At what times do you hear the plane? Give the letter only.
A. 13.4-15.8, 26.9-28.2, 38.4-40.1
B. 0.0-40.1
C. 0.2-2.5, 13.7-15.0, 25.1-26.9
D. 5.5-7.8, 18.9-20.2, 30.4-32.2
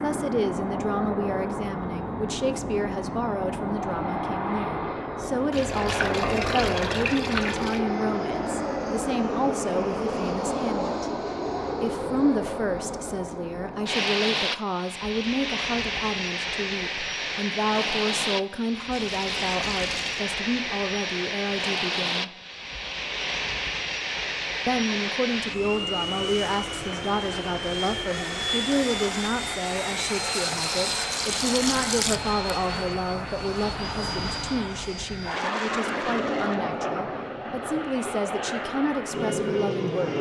B.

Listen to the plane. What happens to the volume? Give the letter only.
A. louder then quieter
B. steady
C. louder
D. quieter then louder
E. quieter
B.